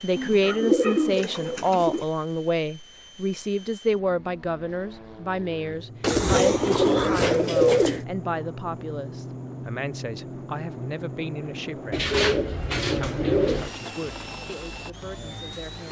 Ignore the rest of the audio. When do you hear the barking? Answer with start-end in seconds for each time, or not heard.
not heard.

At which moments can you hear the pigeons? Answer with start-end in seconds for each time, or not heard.
0.1-2.0, 6.0-8.1, 11.9-13.7.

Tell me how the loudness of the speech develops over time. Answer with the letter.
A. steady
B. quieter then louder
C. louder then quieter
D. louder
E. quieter
E.